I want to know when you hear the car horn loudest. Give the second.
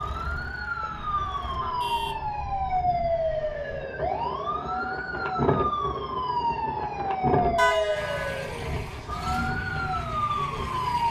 8 s.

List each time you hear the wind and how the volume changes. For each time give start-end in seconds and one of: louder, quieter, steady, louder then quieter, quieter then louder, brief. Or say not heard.
0.1-11.0 louder then quieter.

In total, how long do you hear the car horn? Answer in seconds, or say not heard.
2 s.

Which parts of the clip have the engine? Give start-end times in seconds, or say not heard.
0.0-1.6, 7.9-11.0.